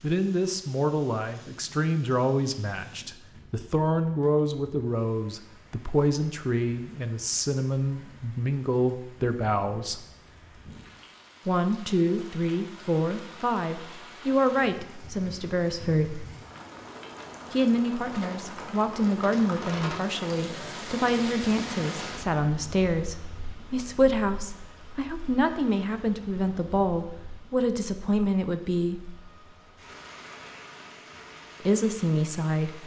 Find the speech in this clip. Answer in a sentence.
The speech can be heard from 0.0 to 10.0 s, from 11.4 to 16.2 s, from 17.5 to 29.1 s and from 31.6 to 32.8 s.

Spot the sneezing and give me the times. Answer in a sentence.
You can't hear the sneezing here.